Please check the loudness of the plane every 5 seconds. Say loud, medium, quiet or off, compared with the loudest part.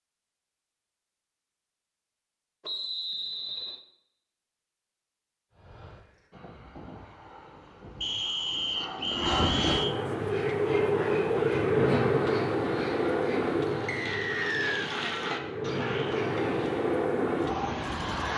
off, medium, loud, loud.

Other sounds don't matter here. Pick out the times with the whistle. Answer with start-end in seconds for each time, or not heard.
2.6-3.8, 8.0-9.9, 13.8-14.9.